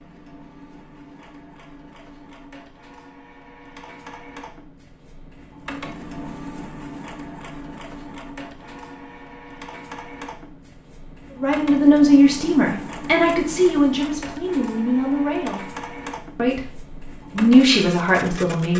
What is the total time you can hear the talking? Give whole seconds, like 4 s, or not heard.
7 s.